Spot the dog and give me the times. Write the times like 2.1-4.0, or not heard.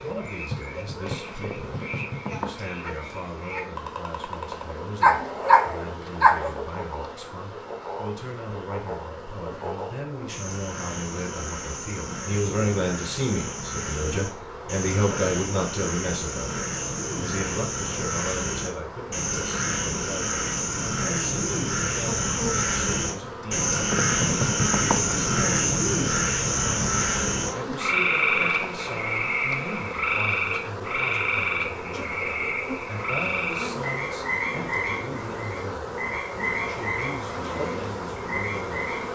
5.0-6.5.